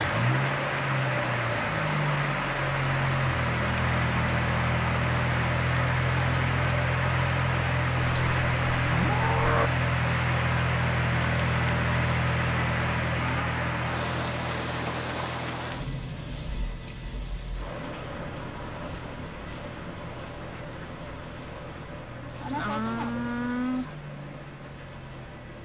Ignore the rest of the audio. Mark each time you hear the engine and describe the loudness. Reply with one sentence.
You can hear the engine from 0.0 to 25.6 s, getting quieter.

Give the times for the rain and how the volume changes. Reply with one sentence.
You can hear the rain from 0.0 to 25.6 s, getting quieter.